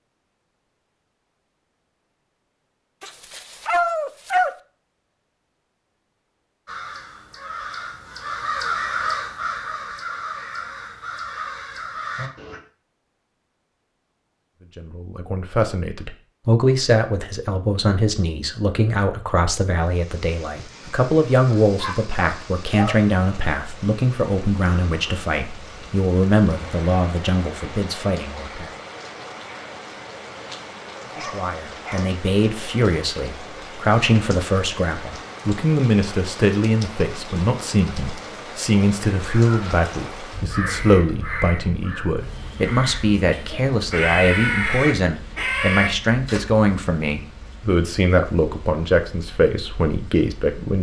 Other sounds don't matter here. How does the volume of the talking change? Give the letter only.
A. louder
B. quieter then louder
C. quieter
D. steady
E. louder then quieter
D.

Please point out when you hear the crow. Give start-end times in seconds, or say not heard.
6.7-12.6, 40.5-46.4.